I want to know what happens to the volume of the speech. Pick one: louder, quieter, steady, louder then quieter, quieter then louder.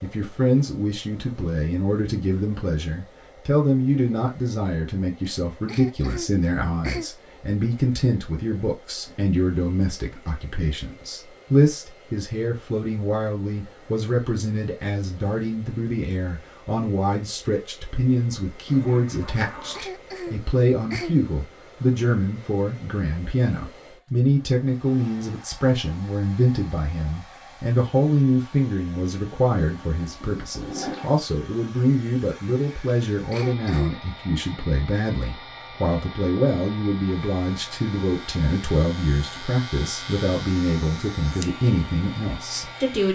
steady.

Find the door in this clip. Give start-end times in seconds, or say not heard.
not heard.